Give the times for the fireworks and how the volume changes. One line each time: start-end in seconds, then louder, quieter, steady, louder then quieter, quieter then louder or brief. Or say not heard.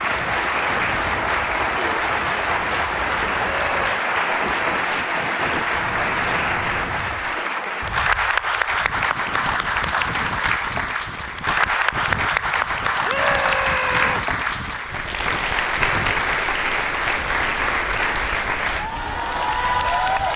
not heard.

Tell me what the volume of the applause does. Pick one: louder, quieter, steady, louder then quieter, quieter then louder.
steady.